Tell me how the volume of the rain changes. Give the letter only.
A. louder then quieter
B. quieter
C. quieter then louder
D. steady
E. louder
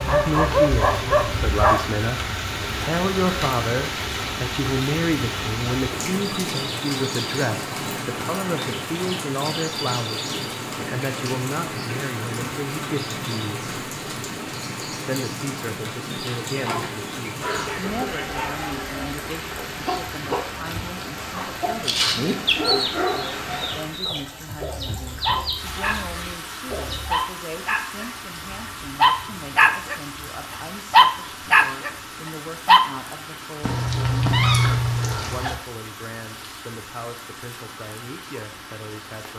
B.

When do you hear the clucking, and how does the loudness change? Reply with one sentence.
You can hear the clucking from 16.6 to 27.1 s, getting louder then quieter.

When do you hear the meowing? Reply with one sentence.
You can hear the meowing from 33.6 to 35.5 s.